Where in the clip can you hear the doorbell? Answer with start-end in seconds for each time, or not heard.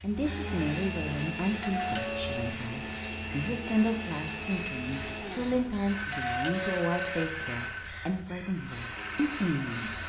1.6-2.5, 6.1-7.0.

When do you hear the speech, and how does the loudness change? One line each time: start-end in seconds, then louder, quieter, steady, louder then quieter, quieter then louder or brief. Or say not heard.
0.0-9.9 steady.